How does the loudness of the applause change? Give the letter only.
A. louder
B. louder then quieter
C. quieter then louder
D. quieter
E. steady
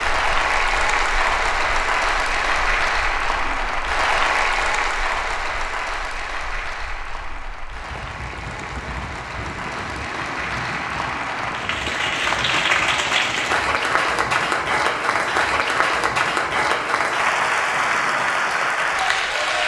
C.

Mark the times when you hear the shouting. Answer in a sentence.
The shouting can't be heard in this clip.